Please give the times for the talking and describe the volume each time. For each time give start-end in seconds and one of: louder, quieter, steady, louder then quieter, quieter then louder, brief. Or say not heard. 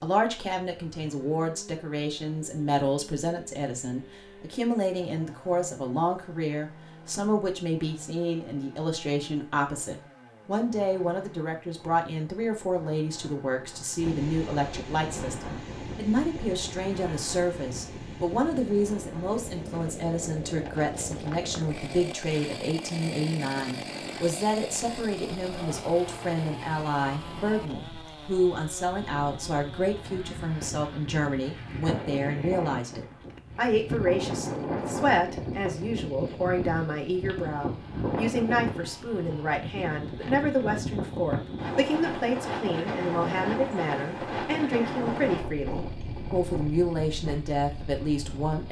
0.0-48.6 steady.